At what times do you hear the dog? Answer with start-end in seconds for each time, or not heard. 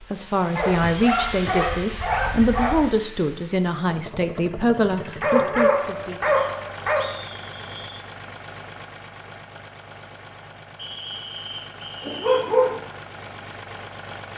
0.6-2.9, 5.2-7.0, 12.0-12.8.